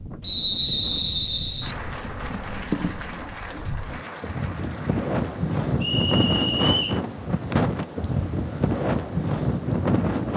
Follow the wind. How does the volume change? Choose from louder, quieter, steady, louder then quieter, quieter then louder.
louder.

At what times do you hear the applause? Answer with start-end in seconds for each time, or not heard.
1.6-5.5.